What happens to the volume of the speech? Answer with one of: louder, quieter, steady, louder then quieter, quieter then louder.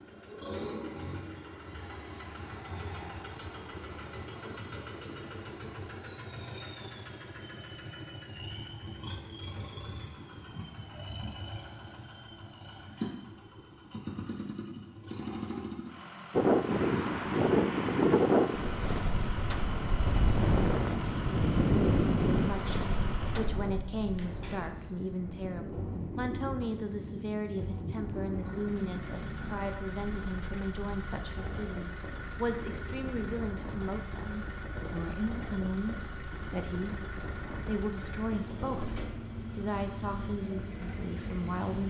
steady.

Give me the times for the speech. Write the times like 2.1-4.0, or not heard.
22.3-41.8.